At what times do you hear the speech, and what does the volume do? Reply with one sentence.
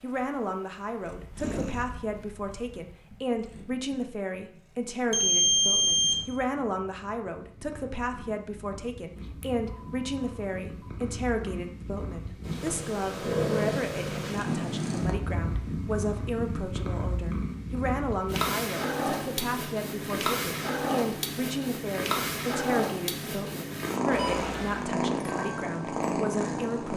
You can hear the speech from 0.0 to 26.9 s, at a steady volume.